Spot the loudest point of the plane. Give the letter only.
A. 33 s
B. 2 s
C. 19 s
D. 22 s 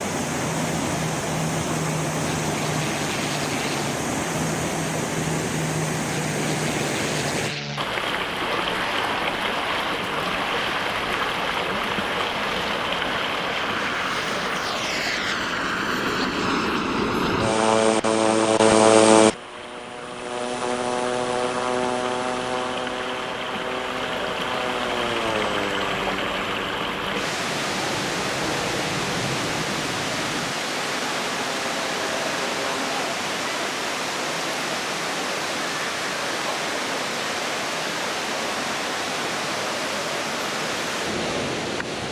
C.